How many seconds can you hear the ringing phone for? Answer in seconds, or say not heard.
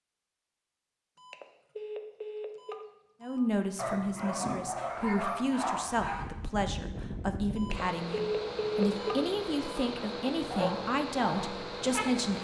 5 s.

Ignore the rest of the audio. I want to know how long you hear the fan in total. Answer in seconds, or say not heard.
6 s.